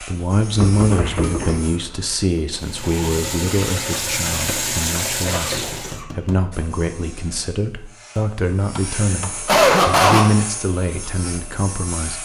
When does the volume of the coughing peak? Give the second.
10 s.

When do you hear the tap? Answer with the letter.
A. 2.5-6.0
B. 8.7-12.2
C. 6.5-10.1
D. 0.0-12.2
A.